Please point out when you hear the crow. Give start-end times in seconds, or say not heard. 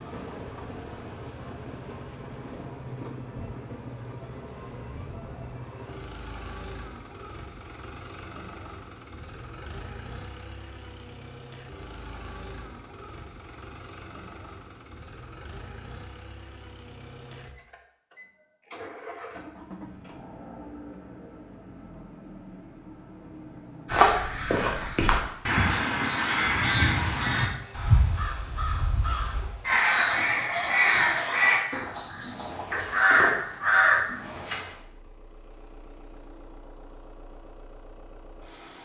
23.9-34.6.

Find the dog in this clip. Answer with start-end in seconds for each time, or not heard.
not heard.